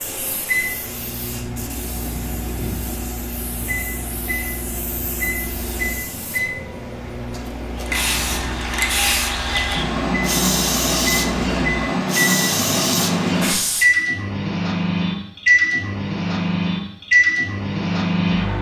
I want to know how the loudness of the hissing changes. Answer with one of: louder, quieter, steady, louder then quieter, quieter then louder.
louder.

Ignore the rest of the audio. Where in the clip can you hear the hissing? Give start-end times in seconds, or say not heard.
0.0-13.8.